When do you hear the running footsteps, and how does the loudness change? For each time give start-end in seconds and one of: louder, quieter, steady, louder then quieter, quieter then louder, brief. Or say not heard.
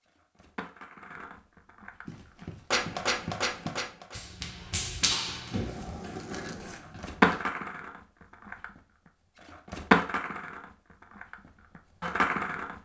2.0-7.5 louder then quieter.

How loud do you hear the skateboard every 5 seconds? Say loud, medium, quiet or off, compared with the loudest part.
medium, loud, medium.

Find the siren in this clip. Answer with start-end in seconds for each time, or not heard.
not heard.